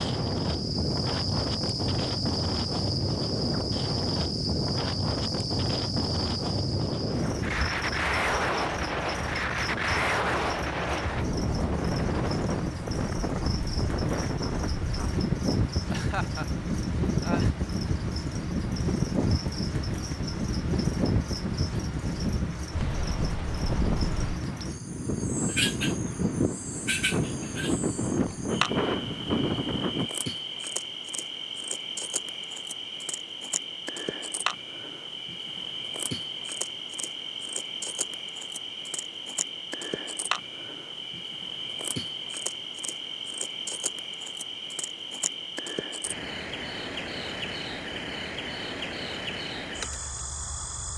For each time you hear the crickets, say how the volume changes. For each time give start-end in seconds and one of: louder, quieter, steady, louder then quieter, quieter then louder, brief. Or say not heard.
0.0-50.9 steady.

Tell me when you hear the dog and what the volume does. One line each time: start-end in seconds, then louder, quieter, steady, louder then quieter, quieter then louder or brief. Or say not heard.
not heard.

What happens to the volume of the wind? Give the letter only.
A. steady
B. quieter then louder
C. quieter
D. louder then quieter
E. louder
A.